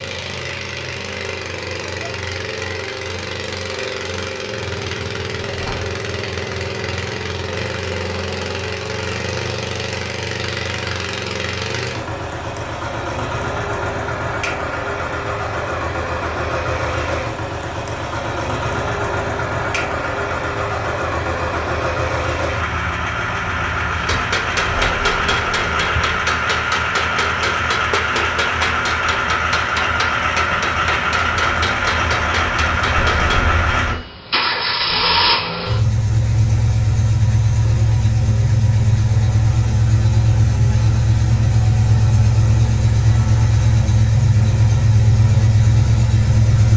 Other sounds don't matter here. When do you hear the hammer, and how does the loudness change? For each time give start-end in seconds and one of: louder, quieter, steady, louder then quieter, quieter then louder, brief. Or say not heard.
23.9-33.4 steady.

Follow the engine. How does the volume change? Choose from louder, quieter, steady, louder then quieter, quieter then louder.
louder.